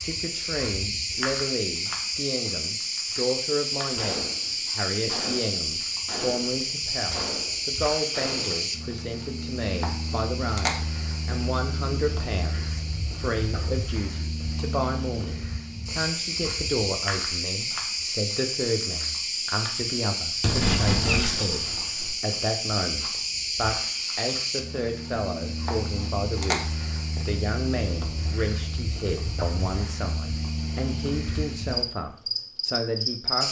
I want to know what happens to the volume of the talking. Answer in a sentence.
The volume of the talking stays about the same.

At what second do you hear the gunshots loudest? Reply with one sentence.
The loudest moment of the gunshots is at 21 seconds.